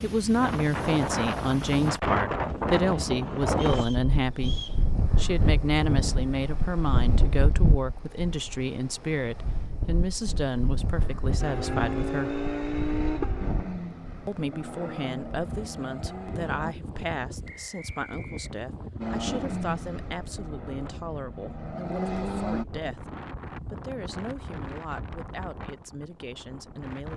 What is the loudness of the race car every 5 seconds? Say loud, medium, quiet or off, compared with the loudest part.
off, off, loud, loud, loud, off.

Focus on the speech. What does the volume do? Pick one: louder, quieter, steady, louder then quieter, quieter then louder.
quieter.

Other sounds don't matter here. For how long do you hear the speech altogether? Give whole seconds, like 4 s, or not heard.
25 s.